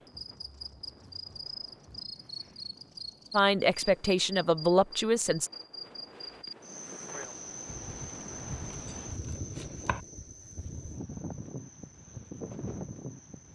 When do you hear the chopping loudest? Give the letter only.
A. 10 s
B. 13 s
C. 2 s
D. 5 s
A.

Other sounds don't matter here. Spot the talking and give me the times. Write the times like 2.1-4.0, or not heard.
3.3-5.5.